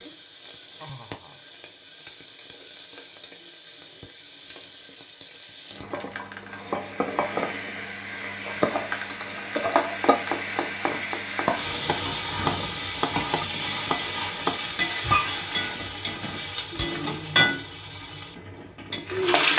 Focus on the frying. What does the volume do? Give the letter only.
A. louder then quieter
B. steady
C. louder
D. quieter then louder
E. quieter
C.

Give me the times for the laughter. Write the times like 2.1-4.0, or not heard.
0.8-1.4.